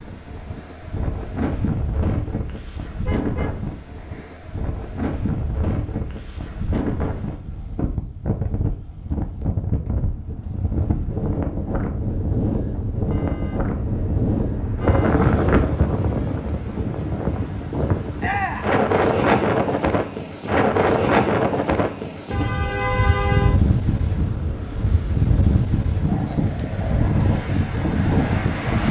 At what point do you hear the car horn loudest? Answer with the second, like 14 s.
23 s.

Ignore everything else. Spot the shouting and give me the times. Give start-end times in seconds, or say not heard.
18.2-18.8.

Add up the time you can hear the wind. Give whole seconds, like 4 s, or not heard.
29 s.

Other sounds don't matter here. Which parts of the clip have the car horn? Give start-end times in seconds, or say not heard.
3.0-4.4, 13.1-15.1, 22.3-23.6.